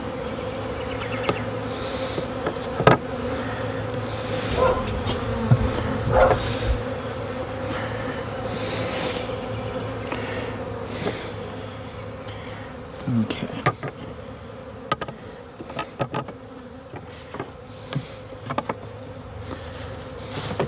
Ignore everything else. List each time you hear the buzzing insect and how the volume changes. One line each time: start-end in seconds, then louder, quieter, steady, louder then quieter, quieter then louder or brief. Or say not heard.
0.0-20.6 quieter.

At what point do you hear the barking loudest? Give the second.
6 s.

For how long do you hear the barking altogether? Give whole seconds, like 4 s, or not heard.
2 s.